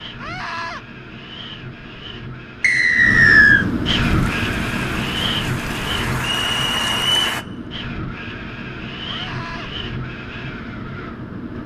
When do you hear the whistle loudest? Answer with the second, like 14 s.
3 s.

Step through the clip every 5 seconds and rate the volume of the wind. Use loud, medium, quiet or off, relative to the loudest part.
loud, loud, medium.